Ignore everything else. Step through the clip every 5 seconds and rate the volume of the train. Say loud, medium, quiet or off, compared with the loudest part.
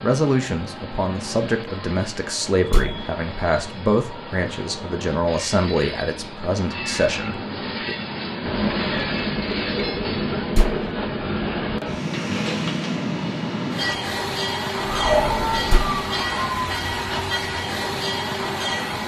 medium, loud, loud, loud.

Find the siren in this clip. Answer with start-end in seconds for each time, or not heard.
14.8-17.1.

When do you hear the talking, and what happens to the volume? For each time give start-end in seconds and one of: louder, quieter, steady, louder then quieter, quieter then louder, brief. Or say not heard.
0.0-8.0 steady.